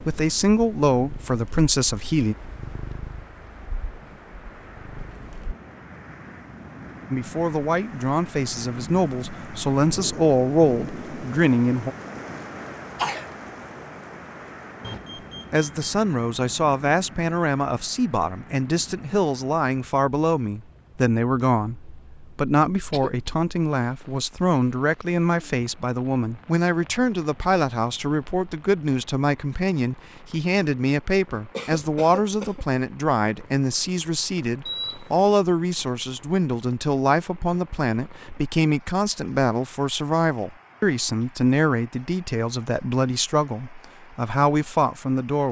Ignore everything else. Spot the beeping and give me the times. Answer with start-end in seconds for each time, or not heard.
14.8-15.7, 34.6-35.2.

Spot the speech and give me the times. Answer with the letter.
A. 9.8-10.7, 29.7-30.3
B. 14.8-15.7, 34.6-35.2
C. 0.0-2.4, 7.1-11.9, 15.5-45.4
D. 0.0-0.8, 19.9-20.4
C.